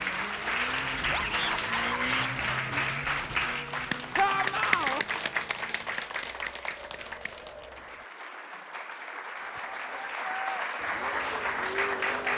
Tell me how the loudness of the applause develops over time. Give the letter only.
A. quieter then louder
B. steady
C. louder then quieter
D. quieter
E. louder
A.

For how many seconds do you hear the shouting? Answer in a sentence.
You can hear the shouting for 3 seconds altogether.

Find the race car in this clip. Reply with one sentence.
You can hear the race car from 0.0 to 8.1 s and from 10.8 to 12.3 s.